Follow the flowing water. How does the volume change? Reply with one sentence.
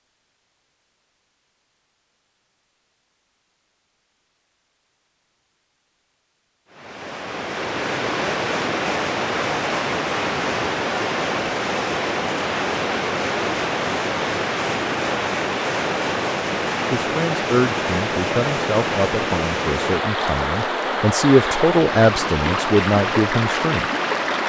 The volume of the flowing water stays about the same.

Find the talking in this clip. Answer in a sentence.
You can hear the talking from 16.9 to 23.9 s.